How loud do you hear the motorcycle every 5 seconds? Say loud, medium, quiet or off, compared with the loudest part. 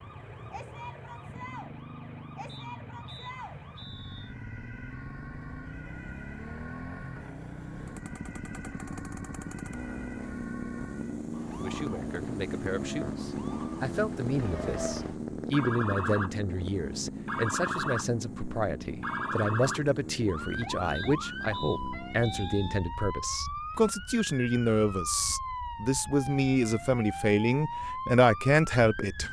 medium, medium, loud, loud, medium, off.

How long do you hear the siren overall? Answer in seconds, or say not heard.
29 s.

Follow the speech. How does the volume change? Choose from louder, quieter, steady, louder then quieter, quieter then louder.
louder.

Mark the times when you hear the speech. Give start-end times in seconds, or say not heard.
11.6-29.2.